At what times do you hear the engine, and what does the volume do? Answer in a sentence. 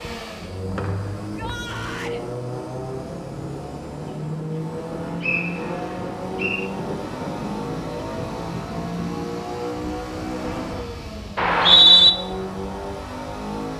You can hear the engine from 0.0 to 13.7 s, at a steady volume.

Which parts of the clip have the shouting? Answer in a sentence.
You can hear the shouting from 1.2 to 2.2 s.